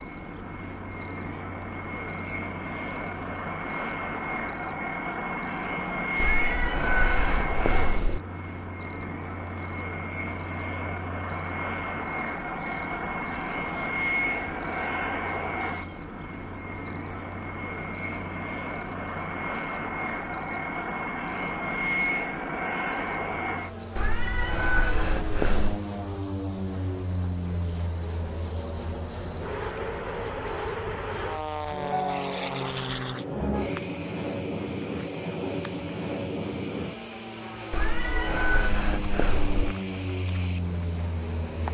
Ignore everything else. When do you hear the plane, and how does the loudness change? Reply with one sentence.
You can hear the plane from 0.0 to 41.6 s, at a steady volume.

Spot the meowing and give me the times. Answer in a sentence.
The meowing can be heard from 6.2 to 8.2 s, from 23.9 to 25.8 s and from 37.7 to 39.8 s.